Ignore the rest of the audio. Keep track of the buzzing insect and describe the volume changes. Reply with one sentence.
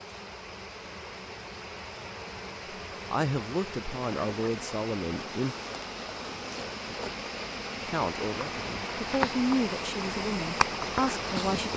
The volume of the buzzing insect goes up.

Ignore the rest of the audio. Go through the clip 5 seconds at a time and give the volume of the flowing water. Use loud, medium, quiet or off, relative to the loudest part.
medium, loud, loud.